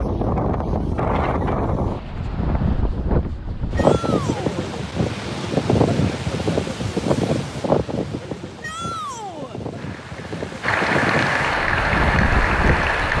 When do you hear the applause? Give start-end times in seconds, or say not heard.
9.8-13.1.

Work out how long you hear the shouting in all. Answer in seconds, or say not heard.
2 s.